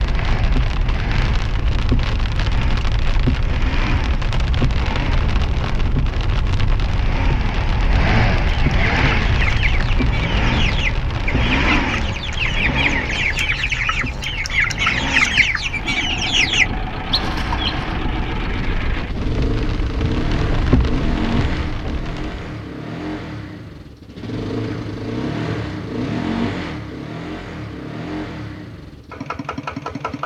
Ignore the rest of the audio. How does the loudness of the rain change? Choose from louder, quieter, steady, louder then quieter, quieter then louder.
quieter then louder.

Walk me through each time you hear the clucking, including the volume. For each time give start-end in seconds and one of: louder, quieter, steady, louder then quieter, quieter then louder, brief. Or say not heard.
8.5-18.0 louder.